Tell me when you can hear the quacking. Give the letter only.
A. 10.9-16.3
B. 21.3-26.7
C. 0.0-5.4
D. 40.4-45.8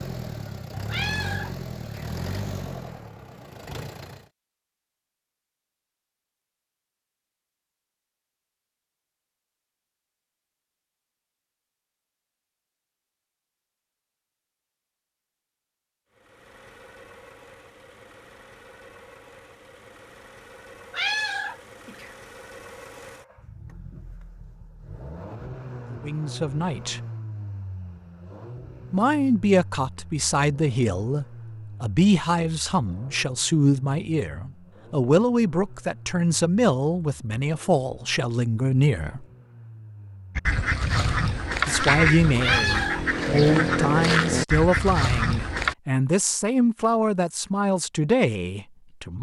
D.